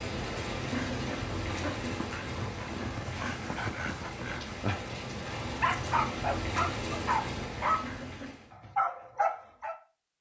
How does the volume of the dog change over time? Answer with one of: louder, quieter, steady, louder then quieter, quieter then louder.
louder.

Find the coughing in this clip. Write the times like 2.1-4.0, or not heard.
0.7-2.2, 7.8-8.3.